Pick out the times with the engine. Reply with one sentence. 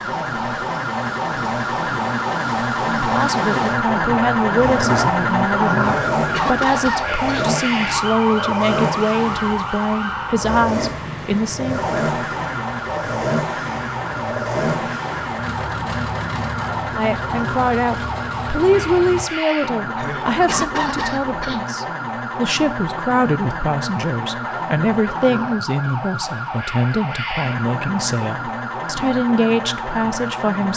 You can hear the engine from 0.0 to 19.2 s.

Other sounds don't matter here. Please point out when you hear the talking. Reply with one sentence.
You can hear the talking from 2.9 to 11.9 s and from 16.9 to 30.7 s.